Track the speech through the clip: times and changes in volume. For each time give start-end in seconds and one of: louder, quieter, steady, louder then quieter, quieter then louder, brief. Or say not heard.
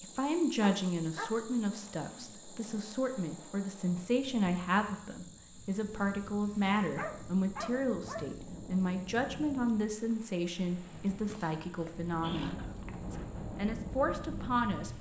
0.0-14.9 steady.